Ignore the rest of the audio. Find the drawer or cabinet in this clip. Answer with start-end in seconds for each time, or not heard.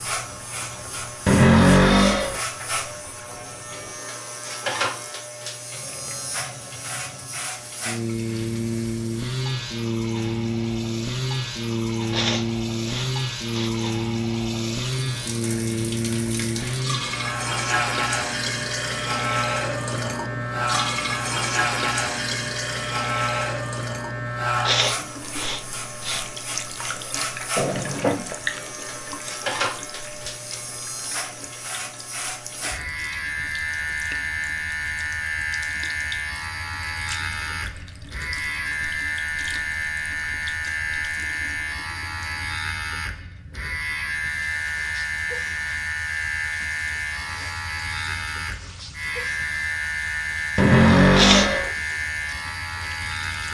1.2-2.4, 27.6-28.2, 50.5-51.7.